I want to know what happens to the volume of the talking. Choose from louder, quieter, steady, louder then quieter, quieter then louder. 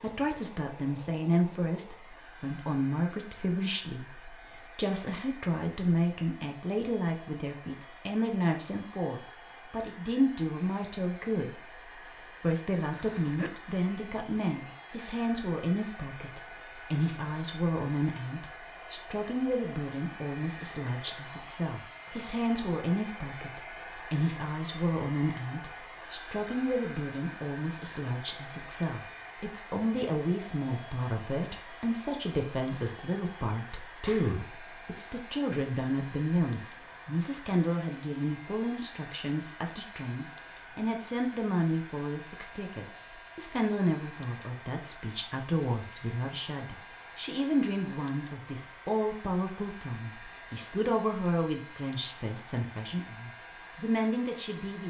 steady.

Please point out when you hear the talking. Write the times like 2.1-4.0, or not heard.
0.0-54.8.